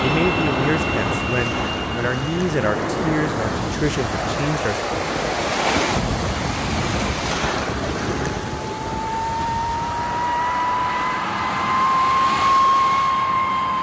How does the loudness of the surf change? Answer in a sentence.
The loudness of the surf goes up, then down.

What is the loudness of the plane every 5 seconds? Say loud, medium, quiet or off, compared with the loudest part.
medium, medium, loud.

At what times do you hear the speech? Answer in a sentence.
The speech can be heard from 0.0 to 4.8 s.